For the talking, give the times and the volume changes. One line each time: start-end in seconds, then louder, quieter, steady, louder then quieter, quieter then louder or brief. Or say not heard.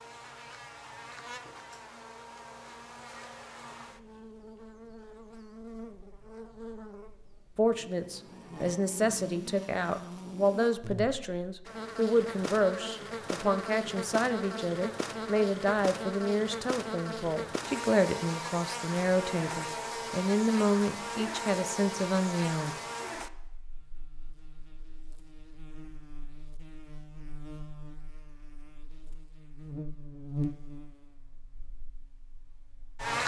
7.5-22.8 steady.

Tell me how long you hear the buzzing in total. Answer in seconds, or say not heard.
33 s.